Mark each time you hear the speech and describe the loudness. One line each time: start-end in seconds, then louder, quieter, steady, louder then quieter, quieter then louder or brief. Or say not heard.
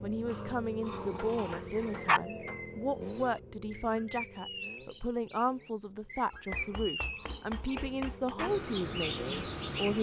0.0-9.9 steady.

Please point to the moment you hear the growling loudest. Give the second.
2 s.